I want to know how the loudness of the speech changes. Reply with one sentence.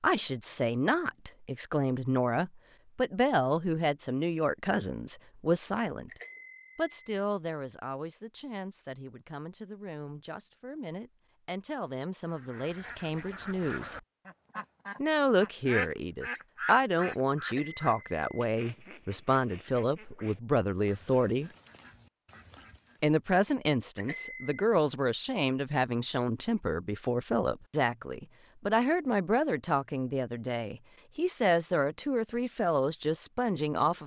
The volume of the speech goes down, then up.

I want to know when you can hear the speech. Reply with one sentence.
The speech can be heard from 0.0 to 13.9 s, from 14.9 to 21.5 s and from 23.0 to 34.0 s.